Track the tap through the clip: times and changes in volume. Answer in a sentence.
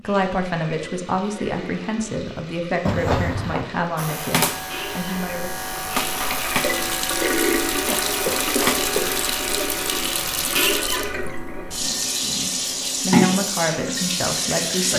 You can hear the tap from 0.0 to 14.9 s, getting louder.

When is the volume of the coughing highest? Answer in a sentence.
The loudest moment of the coughing is at 3 seconds.